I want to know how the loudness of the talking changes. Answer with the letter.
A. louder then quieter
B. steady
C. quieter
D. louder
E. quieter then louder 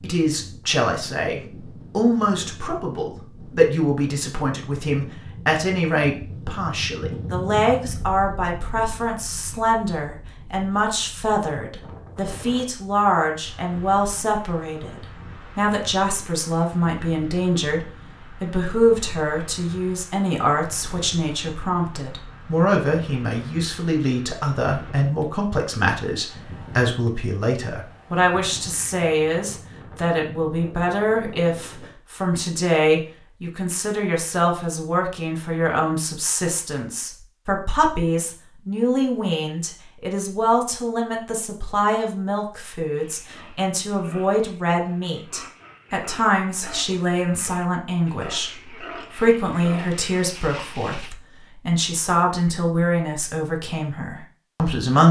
B.